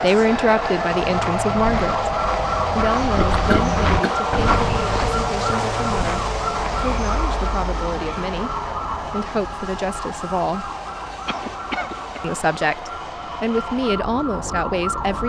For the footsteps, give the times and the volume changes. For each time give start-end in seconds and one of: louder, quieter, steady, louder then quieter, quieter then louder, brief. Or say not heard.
1.0-7.3 louder then quieter.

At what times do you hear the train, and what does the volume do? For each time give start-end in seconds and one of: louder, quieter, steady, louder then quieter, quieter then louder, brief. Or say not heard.
0.0-15.2 quieter.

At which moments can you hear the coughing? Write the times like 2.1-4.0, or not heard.
3.5-4.2, 11.2-12.2.